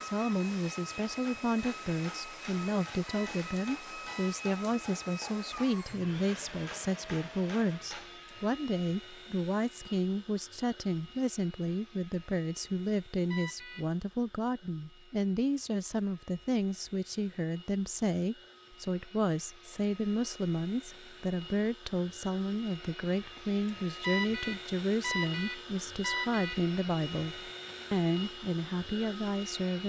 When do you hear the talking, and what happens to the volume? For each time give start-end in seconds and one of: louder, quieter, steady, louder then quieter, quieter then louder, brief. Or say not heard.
0.0-29.8 steady.